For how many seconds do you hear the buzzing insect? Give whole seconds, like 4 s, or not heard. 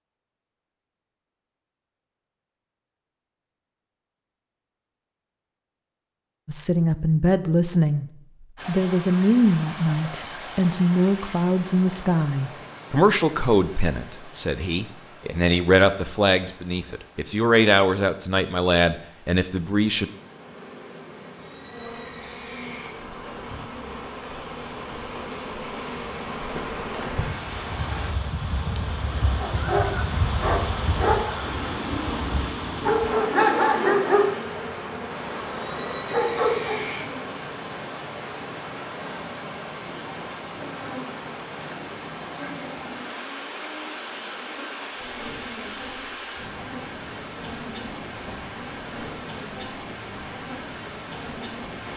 32 s.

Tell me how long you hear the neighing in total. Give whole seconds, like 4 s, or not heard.
3 s.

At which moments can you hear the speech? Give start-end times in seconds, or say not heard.
6.5-8.1, 8.7-20.1.